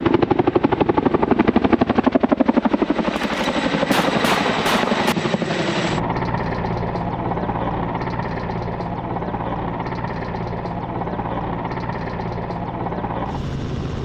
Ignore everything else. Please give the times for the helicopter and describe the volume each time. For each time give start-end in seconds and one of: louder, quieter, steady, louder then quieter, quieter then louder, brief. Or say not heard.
0.0-14.0 quieter.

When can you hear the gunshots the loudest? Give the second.
4 s.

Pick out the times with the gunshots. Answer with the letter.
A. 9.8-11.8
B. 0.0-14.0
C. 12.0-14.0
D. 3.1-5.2
D.